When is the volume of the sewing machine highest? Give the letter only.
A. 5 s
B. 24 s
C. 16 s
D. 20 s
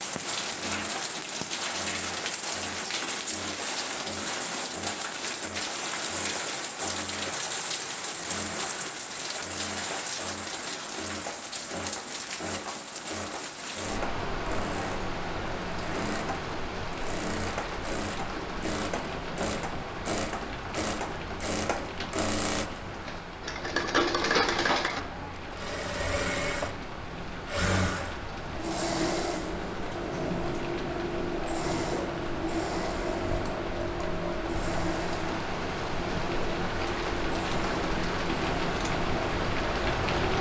B.